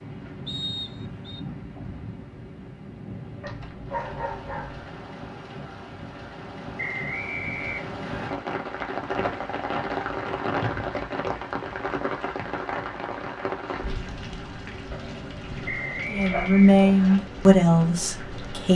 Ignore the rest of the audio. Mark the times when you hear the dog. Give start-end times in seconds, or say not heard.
3.4-5.1, 14.9-16.9.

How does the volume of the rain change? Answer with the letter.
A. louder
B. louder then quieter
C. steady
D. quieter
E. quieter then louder
B.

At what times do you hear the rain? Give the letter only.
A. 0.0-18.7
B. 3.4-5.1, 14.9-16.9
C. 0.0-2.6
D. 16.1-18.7
A.